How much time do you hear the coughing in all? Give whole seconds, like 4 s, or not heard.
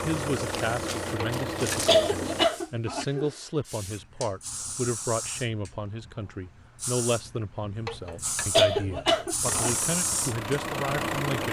4 s.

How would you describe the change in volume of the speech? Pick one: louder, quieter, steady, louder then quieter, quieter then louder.
steady.